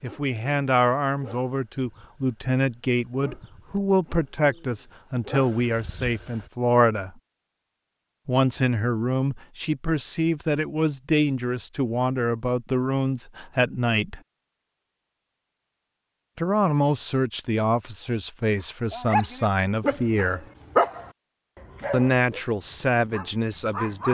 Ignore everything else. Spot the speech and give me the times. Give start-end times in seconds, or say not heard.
0.0-7.2, 8.2-14.2, 16.4-20.4, 21.9-24.1.